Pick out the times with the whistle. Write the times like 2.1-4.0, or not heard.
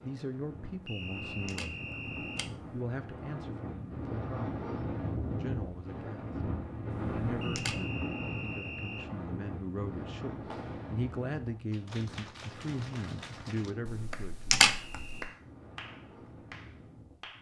0.8-2.5, 7.4-9.1, 14.8-15.4.